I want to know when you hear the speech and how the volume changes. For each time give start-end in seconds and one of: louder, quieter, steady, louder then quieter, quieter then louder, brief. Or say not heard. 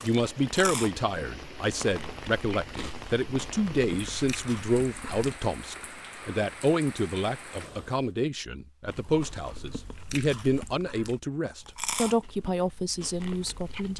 0.0-13.9 steady.